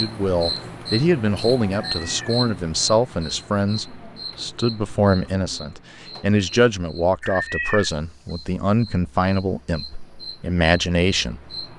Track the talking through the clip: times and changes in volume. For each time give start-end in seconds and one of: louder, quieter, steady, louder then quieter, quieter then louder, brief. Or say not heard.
0.0-11.6 steady.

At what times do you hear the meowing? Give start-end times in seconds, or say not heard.
1.7-2.4, 7.2-7.9.